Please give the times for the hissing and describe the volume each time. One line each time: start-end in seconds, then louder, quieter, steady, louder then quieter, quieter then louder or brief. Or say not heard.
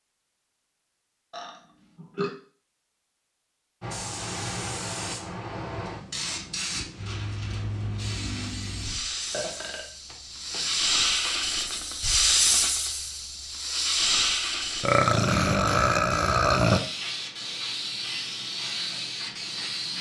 3.8-19.9 louder then quieter.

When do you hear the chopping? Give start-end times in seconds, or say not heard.
not heard.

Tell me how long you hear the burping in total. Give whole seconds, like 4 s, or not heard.
5 s.